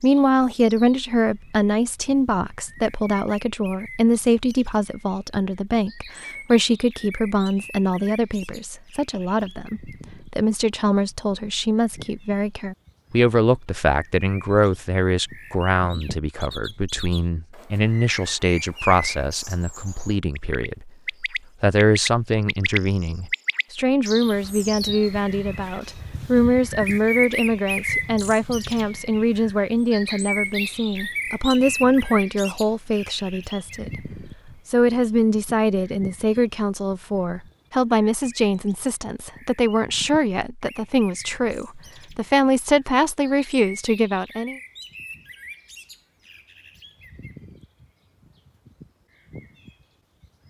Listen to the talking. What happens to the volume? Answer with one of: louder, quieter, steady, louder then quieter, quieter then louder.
steady.